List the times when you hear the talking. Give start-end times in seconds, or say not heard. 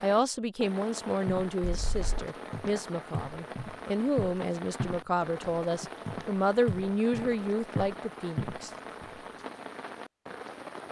0.0-8.7.